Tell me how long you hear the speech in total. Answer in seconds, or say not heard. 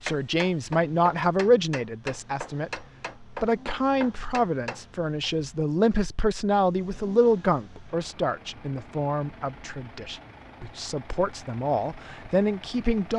13 s.